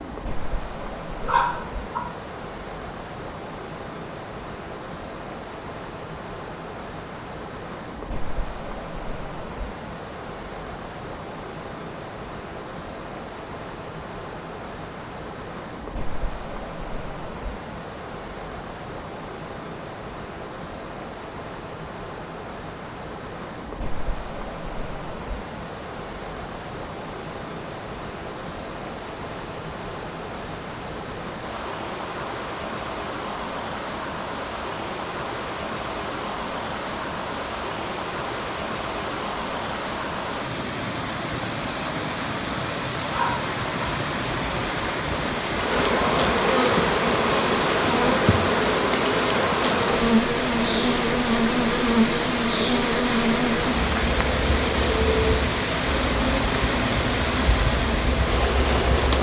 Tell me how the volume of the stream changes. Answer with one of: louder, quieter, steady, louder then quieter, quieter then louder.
louder.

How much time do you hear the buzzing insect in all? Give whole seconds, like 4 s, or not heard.
14 s.